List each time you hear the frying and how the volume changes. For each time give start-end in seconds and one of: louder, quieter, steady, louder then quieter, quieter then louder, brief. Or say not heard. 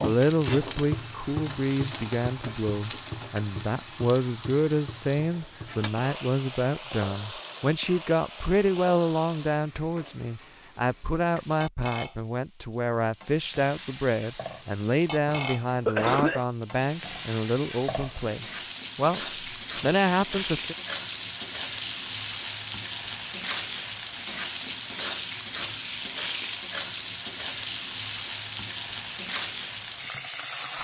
0.0-30.7 quieter then louder.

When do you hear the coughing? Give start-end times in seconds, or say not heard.
15.2-16.4.